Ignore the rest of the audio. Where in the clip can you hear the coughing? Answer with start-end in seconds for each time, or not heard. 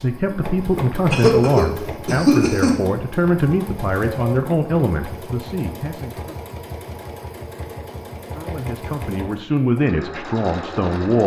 0.7-2.8.